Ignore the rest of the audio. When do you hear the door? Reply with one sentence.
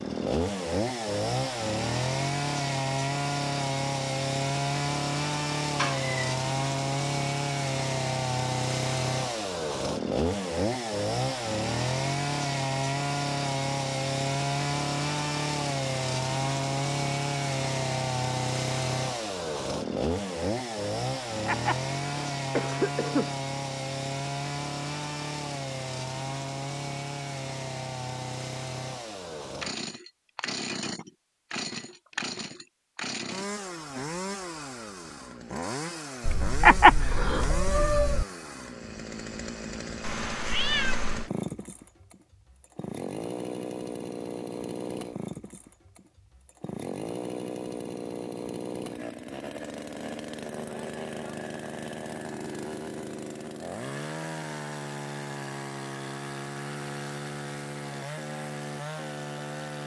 The door can't be heard in this clip.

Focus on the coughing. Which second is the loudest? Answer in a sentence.
The volume of the coughing peaks at 37 seconds.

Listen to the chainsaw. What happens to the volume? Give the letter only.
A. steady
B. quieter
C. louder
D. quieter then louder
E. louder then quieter
B.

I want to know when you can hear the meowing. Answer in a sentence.
You can hear the meowing from 5.8 to 6.3 s, from 36.2 to 38.2 s and from 40.0 to 41.3 s.